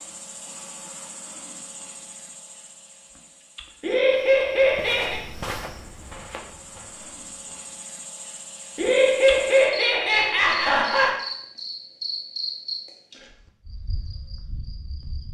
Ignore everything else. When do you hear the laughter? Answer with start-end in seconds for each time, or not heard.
3.8-5.2, 8.8-11.2.